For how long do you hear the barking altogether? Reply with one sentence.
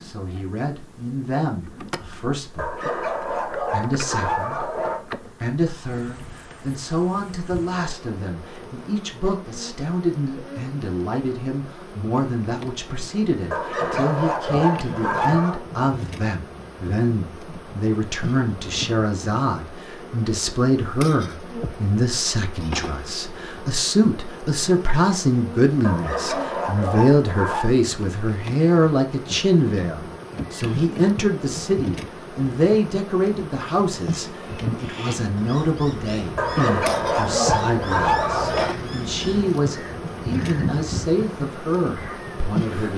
You can hear the barking for 9 seconds altogether.